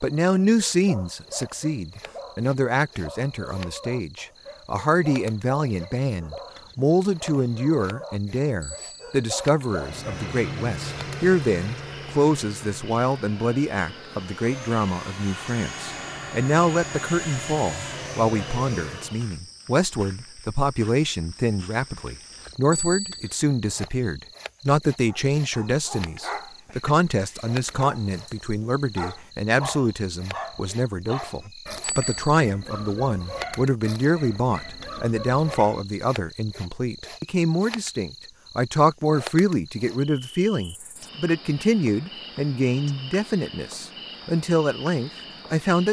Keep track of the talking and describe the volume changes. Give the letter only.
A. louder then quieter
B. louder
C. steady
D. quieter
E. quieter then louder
C.